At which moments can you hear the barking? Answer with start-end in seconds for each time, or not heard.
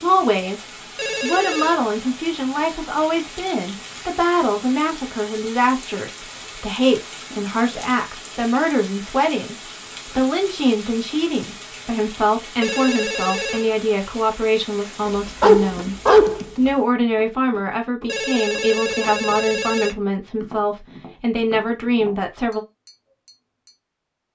15.1-16.4.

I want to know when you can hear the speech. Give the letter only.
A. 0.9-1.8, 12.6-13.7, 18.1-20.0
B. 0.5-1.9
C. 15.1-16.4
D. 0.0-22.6
D.